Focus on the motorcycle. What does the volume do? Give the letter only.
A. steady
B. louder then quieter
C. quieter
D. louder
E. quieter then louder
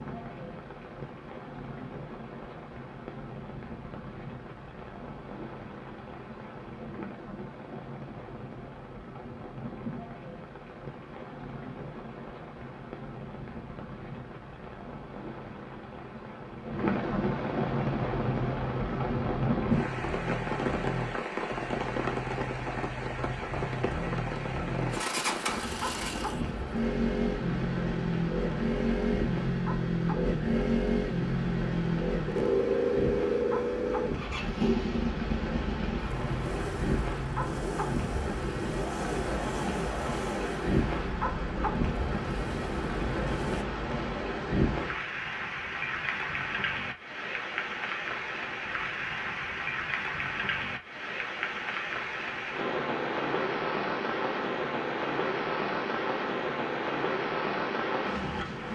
B.